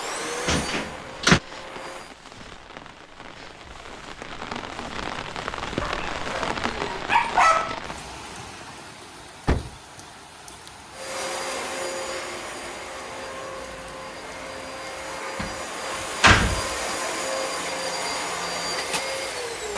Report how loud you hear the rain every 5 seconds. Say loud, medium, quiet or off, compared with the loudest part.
medium, loud, medium, medium.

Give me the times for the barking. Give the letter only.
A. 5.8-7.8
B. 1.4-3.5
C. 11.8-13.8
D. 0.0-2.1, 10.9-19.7
A.